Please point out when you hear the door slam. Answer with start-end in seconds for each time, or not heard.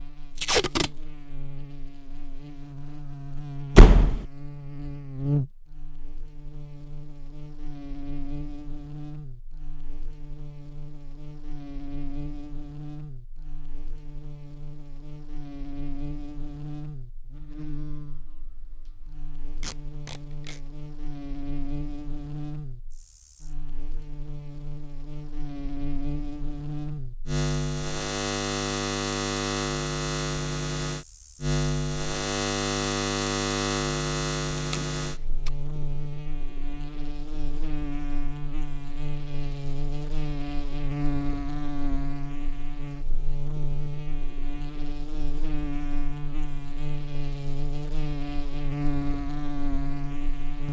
3.8-4.2.